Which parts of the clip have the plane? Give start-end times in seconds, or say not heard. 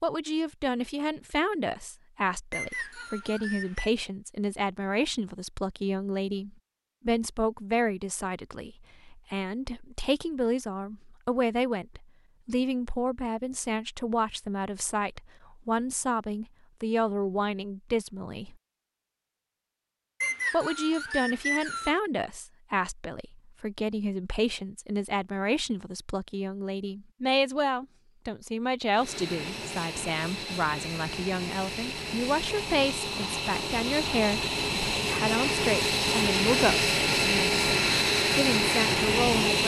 28.9-39.6.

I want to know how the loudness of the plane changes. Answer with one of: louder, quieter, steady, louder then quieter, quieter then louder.
louder.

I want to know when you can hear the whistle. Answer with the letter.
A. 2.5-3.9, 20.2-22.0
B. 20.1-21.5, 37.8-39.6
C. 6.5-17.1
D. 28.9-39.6
A.